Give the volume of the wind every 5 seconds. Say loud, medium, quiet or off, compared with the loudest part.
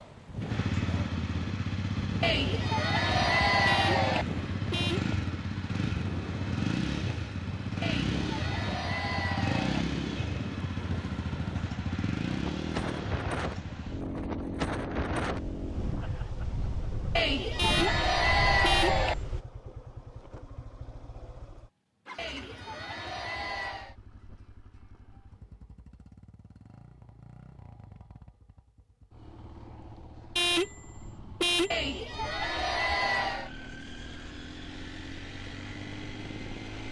loud, loud, loud, loud, off, off, off, off.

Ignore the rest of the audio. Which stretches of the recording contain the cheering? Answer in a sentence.
You can hear the cheering from 2.2 to 4.2 s, from 7.8 to 9.8 s, from 17.1 to 19.1 s, from 22.1 to 23.9 s and from 31.7 to 33.5 s.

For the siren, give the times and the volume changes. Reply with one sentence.
You can't hear the siren here.